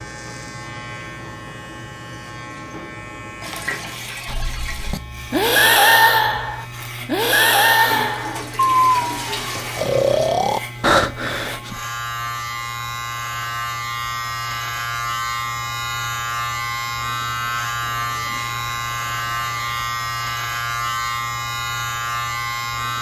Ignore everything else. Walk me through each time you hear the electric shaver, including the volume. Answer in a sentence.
You can hear the electric shaver from 0.0 to 22.9 s, getting louder.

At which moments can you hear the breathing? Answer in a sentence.
The breathing can be heard from 4.2 to 11.8 s.